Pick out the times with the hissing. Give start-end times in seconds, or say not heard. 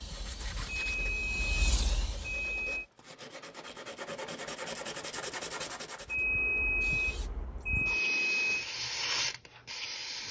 0.0-2.9, 6.0-10.2.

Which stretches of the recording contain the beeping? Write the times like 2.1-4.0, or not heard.
0.7-2.9, 6.0-8.7.